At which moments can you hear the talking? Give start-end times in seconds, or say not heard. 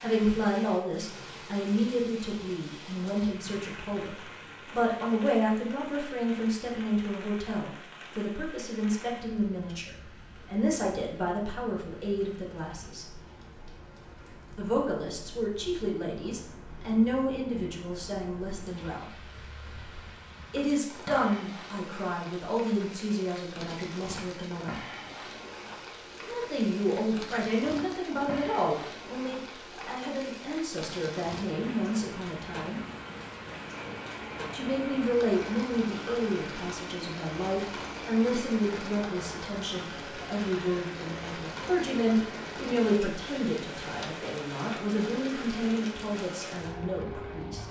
0.0-13.2, 14.6-19.1, 20.5-24.8, 26.2-32.8, 34.5-47.6.